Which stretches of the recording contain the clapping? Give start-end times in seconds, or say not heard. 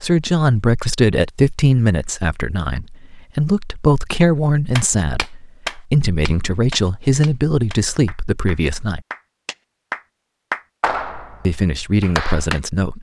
4.8-12.6.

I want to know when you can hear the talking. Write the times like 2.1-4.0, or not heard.
0.0-9.0, 11.4-12.9.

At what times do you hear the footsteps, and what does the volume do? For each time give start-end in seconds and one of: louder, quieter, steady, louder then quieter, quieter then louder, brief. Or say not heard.
not heard.